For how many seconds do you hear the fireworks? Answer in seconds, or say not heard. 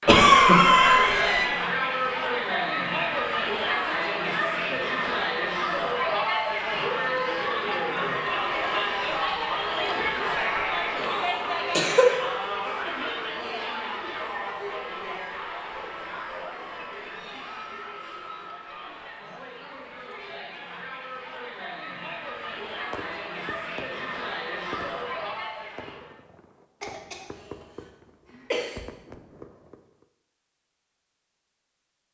8 s.